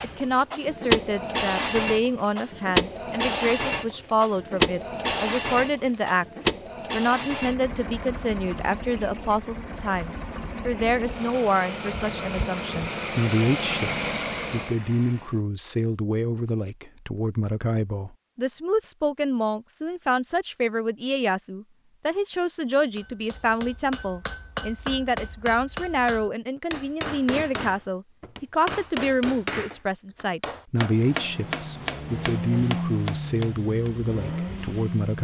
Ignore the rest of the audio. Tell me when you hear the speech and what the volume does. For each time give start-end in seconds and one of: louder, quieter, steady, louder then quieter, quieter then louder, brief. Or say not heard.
0.0-35.1 steady.